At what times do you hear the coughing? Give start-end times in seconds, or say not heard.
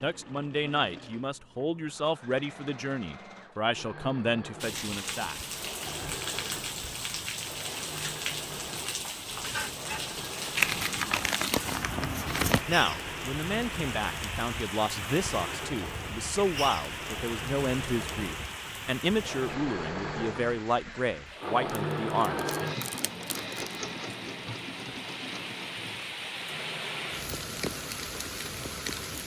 not heard.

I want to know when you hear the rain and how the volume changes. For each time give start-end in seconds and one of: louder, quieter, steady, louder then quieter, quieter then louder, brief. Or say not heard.
4.6-29.2 quieter then louder.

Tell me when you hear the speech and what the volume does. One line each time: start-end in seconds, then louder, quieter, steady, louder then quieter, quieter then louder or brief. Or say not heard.
0.0-5.3 steady
12.7-22.5 steady.